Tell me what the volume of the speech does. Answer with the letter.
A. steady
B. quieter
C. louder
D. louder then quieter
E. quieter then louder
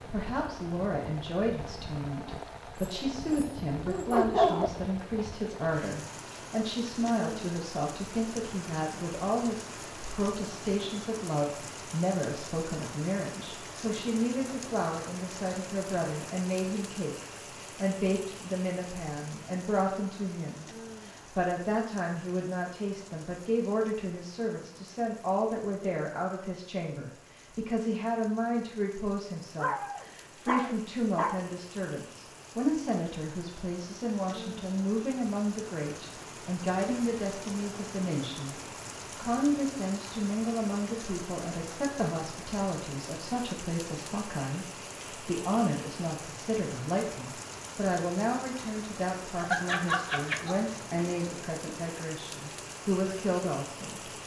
A.